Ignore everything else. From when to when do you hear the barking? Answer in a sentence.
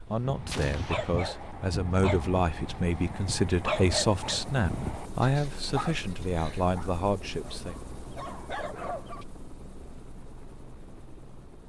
The barking can be heard from 0.2 to 9.2 s.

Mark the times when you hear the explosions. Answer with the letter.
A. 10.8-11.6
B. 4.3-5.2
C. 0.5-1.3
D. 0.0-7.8
C.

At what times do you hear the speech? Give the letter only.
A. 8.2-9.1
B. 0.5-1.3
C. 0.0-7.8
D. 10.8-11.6
C.